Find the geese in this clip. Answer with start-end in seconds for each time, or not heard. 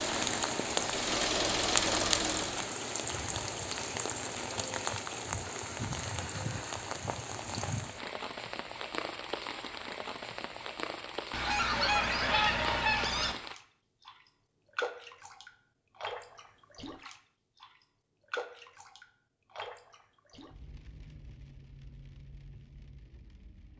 11.3-13.3.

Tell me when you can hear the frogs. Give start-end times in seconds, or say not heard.
not heard.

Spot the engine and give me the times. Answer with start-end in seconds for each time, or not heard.
0.0-2.8.